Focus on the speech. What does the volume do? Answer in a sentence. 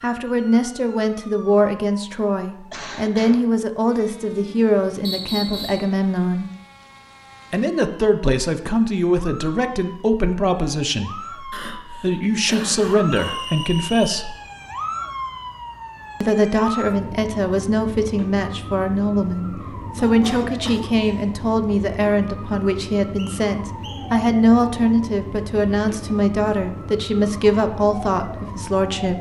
The volume of the speech stays about the same.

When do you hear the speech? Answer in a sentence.
You can hear the speech from 0.0 to 6.5 s, from 7.5 to 14.3 s and from 16.2 to 29.1 s.